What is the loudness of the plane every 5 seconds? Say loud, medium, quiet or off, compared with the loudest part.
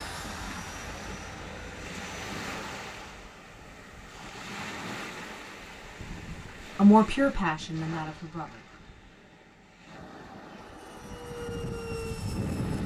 medium, off, loud.